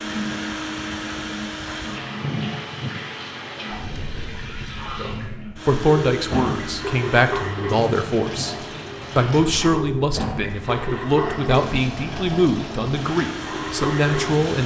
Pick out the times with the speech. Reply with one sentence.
You can hear the speech from 5.0 to 8.6 s and from 9.2 to 14.6 s.